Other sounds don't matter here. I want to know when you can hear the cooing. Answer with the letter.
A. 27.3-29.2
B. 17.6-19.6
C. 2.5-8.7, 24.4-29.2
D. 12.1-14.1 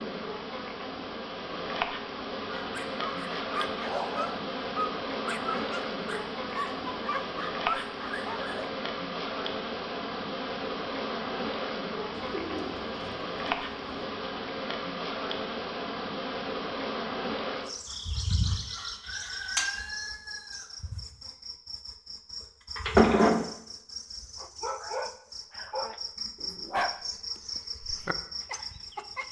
D.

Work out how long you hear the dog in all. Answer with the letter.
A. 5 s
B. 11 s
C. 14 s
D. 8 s
B.